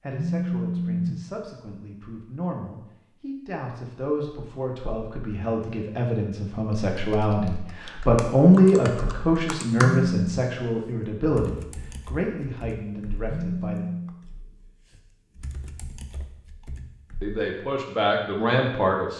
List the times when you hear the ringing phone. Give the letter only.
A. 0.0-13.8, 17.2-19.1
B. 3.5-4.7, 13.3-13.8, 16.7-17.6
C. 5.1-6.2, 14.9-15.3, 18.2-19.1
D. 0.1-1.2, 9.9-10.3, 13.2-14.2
D.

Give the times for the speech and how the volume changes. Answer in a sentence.
The speech can be heard from 0.0 to 13.8 s, getting louder then quieter; and briefly from 17.2 to 19.1 s.